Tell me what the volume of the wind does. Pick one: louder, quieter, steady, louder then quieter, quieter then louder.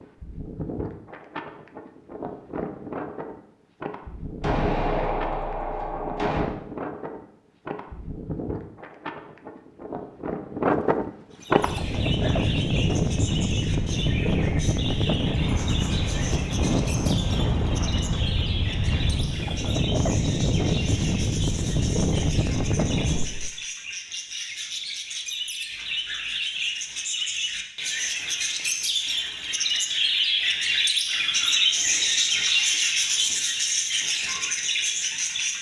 louder.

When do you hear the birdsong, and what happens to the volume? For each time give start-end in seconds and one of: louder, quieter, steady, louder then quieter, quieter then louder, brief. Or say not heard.
11.3-35.5 louder.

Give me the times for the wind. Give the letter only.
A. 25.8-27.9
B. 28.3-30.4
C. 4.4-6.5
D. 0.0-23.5
D.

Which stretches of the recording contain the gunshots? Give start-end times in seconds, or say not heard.
4.4-6.5.